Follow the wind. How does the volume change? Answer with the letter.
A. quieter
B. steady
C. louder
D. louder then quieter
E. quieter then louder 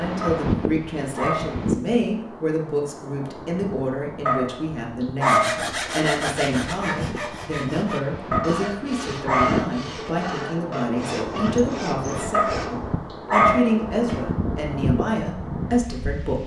E.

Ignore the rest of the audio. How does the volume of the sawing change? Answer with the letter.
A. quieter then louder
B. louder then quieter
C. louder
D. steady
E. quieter
E.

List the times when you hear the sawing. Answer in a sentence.
The sawing can be heard from 5.2 to 12.8 s.